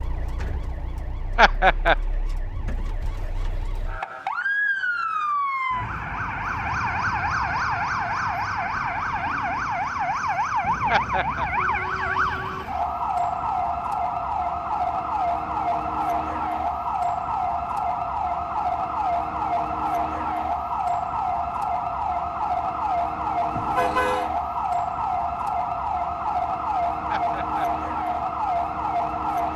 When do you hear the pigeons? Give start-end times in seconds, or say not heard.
not heard.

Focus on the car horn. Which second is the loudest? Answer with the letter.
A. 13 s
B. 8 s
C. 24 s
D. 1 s
C.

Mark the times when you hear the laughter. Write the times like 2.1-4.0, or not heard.
1.4-1.9, 10.9-11.4, 27.1-27.6.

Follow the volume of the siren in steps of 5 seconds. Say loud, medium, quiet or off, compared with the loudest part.
medium, loud, loud, loud, loud, loud.